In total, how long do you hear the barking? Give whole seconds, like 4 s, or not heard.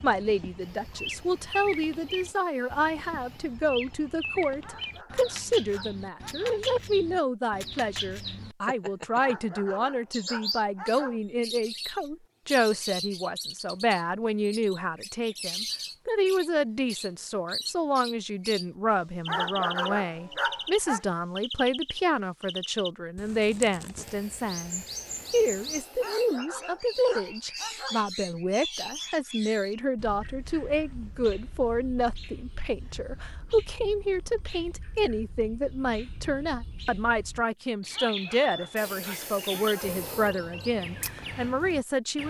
10 s.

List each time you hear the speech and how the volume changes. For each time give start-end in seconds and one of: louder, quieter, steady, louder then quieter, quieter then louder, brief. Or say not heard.
0.0-42.2 steady.